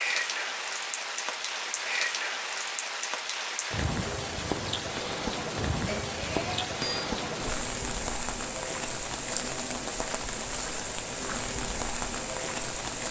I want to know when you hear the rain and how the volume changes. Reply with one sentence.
The rain can be heard from 0.0 to 13.0 s, at a steady volume.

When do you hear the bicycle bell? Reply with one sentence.
The bicycle bell can be heard from 5.8 to 7.0 s.